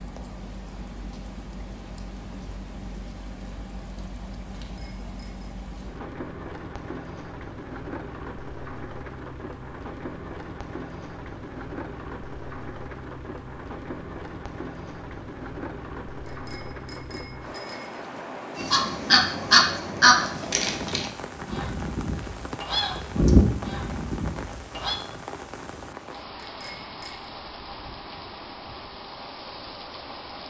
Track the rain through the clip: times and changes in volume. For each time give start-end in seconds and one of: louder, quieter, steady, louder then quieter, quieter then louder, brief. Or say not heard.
0.0-30.4 steady.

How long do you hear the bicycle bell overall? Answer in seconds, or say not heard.
3 s.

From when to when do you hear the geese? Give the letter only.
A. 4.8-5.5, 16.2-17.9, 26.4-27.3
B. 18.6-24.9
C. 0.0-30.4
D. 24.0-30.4
B.